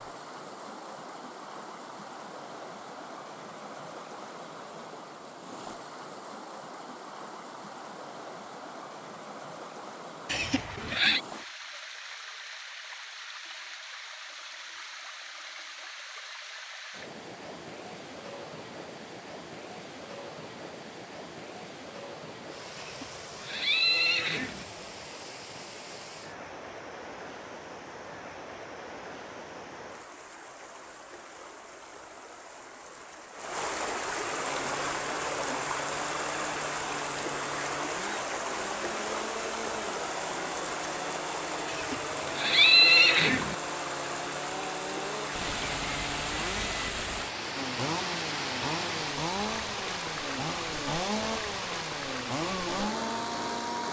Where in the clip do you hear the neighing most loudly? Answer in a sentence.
The loudest moment of the neighing is at 43 seconds.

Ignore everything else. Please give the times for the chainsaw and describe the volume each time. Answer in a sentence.
You can hear the chainsaw from 34.4 to 53.8 s, getting louder.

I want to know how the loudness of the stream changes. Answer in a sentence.
The volume of the stream goes up.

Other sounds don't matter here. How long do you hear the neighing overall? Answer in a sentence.
The neighing can be heard for 5 seconds in total.